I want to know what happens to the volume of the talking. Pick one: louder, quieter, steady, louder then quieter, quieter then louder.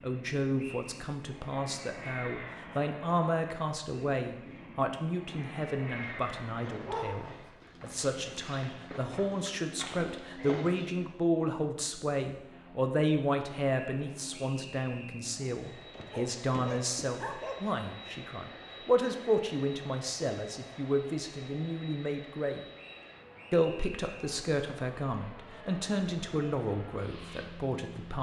steady.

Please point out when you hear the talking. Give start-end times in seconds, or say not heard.
0.0-22.6, 23.5-28.1.